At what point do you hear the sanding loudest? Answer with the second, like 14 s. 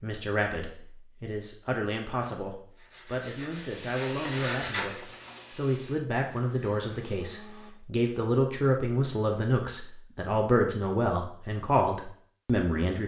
5 s.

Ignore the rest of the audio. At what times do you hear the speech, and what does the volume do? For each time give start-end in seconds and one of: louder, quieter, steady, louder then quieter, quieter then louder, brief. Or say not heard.
0.0-13.0 louder.